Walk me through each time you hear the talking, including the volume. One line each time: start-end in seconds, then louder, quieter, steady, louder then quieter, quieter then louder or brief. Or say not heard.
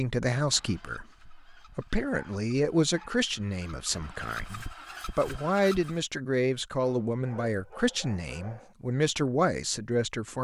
0.0-10.4 steady.